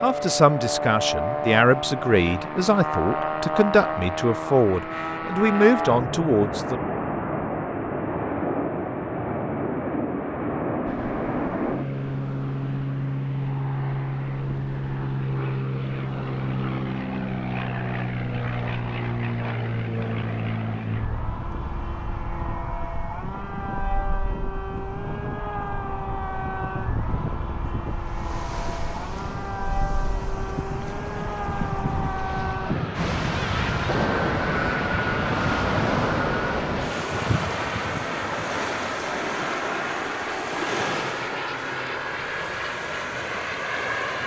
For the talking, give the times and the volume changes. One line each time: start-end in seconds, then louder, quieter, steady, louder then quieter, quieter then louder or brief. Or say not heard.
0.0-6.8 steady.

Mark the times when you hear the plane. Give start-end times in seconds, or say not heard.
0.0-44.2.